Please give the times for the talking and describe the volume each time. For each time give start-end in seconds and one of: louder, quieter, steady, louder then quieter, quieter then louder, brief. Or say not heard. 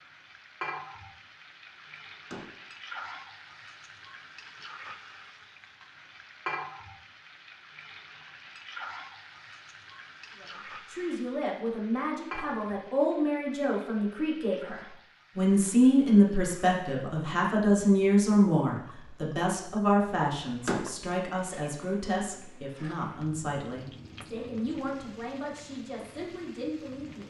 10.4-27.2 louder then quieter.